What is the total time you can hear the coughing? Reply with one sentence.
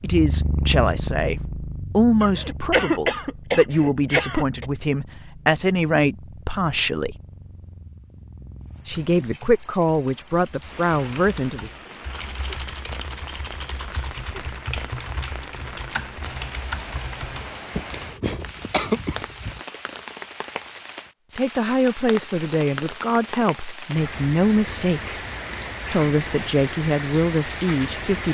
The coughing can be heard for 4 seconds in total.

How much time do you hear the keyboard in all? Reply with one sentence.
You can hear the keyboard for 9 seconds altogether.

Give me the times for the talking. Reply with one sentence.
The talking can be heard from 0.0 to 7.2 s, from 8.8 to 11.7 s, from 21.4 to 25.1 s and from 25.9 to 28.2 s.